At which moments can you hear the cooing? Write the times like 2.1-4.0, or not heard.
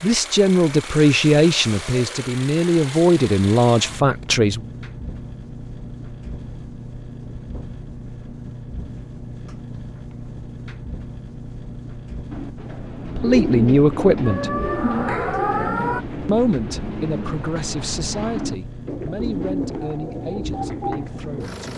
12.3-21.5.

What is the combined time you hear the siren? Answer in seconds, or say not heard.
2 s.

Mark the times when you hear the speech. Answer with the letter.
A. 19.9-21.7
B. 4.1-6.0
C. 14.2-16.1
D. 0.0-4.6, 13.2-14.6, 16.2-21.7
D.